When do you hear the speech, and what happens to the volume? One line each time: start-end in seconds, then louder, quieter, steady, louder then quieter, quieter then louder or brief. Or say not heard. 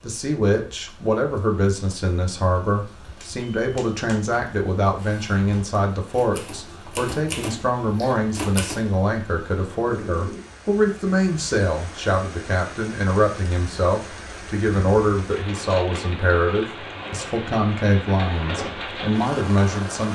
0.0-20.0 steady.